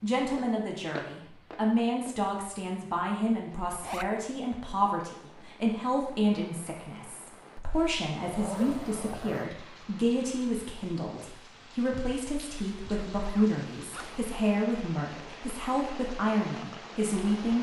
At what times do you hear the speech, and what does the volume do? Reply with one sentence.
You can hear the speech from 0.0 to 17.5 s, at a steady volume.